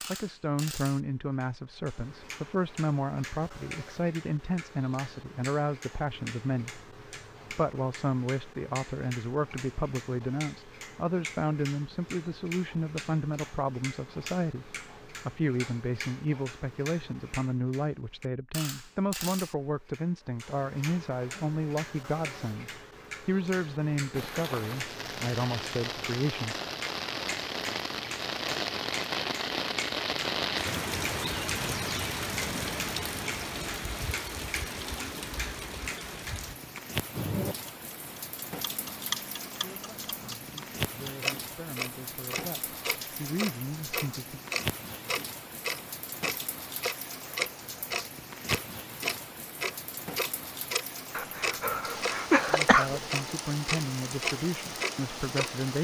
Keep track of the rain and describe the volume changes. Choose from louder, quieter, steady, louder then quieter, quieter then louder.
quieter.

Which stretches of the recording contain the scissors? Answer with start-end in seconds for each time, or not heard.
not heard.